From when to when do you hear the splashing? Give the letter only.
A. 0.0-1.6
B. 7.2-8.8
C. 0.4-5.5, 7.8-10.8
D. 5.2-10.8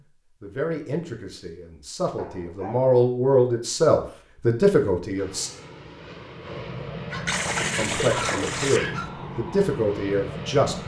B.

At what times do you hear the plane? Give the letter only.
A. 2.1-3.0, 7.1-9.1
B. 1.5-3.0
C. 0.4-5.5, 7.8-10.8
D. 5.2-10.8
D.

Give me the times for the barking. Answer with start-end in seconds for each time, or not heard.
2.1-3.0, 7.1-9.1.